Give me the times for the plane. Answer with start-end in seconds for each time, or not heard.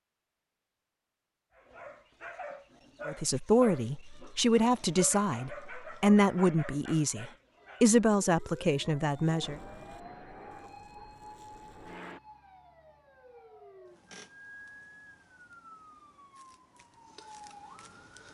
9.4-12.2.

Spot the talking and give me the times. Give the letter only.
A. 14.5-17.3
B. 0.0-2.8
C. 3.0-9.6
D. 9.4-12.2
C.